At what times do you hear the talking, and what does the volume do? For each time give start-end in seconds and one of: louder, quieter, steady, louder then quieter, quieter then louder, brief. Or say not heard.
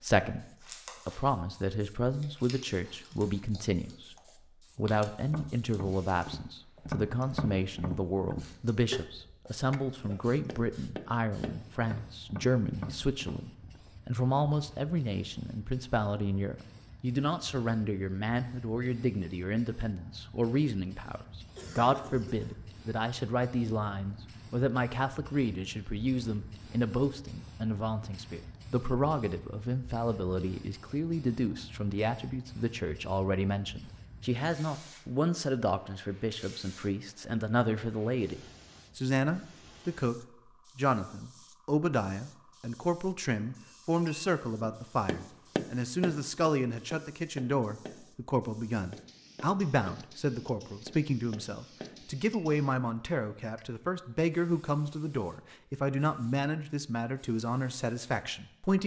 0.0-58.8 steady.